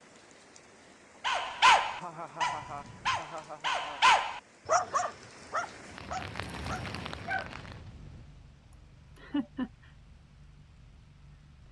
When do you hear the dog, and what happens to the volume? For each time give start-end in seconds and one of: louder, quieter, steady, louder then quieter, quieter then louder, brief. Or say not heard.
1.2-8.2 quieter.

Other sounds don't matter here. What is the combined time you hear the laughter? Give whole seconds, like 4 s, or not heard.
3 s.